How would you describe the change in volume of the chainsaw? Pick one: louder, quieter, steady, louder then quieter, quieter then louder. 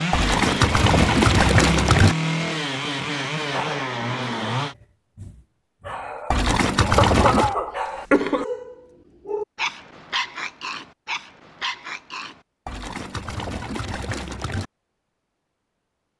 steady.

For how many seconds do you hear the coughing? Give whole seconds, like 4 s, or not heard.
2 s.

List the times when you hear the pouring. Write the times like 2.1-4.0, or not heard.
0.1-2.1, 6.3-7.5, 12.7-14.7.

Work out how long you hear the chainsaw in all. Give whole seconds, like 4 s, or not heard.
5 s.